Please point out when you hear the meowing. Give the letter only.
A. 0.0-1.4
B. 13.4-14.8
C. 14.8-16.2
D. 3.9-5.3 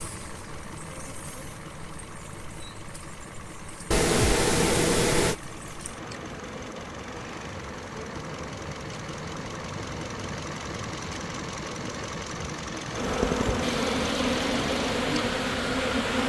D.